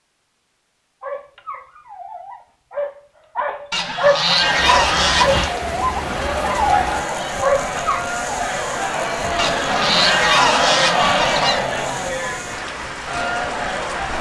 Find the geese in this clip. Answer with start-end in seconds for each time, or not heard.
3.7-5.5, 9.3-11.7.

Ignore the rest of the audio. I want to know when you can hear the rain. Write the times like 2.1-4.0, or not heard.
4.3-14.1.